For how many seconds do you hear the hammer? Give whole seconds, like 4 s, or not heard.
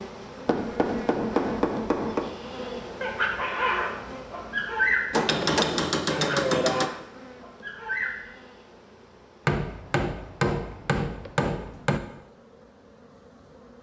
6 s.